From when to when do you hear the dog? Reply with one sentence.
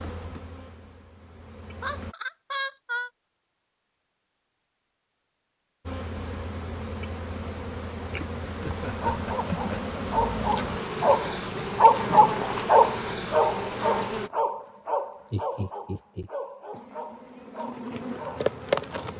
You can hear the dog from 8.8 to 19.1 s.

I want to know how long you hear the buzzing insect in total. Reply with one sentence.
The buzzing insect can be heard for 13 seconds in total.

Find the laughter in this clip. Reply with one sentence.
You can hear the laughter from 1.8 to 3.1 s, from 8.6 to 9.9 s and from 15.3 to 16.3 s.